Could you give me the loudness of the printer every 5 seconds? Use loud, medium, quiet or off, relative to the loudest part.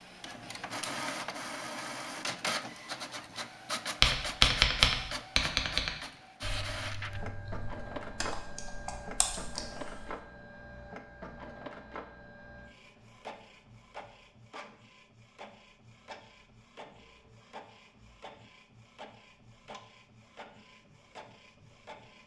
loud, loud, medium, quiet, quiet.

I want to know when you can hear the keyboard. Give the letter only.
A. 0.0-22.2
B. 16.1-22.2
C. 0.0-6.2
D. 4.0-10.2
D.